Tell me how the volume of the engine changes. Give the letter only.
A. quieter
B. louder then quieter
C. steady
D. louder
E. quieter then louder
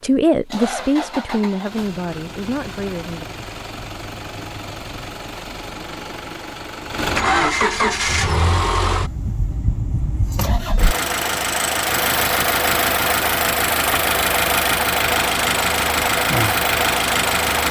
D.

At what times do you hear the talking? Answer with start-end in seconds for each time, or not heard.
0.0-3.2.